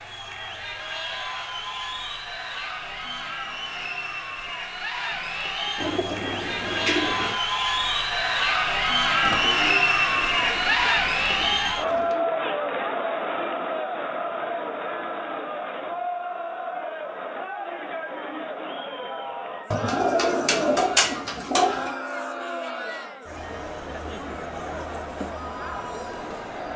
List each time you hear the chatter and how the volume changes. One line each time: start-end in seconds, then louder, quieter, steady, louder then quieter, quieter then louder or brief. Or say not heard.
0.0-26.7 louder then quieter.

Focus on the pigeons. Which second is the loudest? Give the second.
21 s.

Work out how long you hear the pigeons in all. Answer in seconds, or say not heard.
7 s.